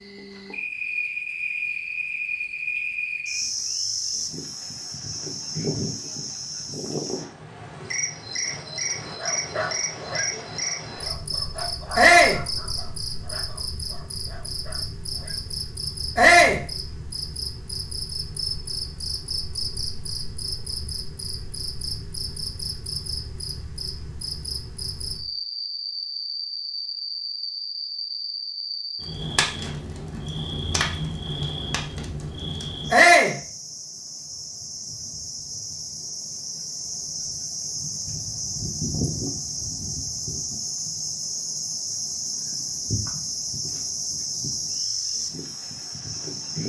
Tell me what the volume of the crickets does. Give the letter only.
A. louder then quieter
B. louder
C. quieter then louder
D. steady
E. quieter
D.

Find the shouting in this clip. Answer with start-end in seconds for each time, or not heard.
11.9-12.4, 16.1-16.6, 32.9-33.4.